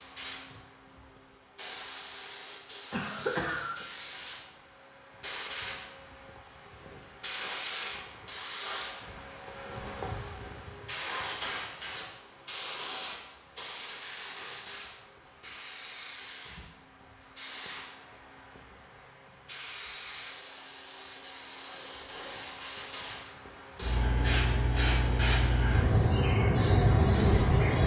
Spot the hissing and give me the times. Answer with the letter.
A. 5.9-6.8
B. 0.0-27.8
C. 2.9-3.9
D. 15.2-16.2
B.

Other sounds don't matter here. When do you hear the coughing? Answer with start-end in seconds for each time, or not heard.
2.9-3.9.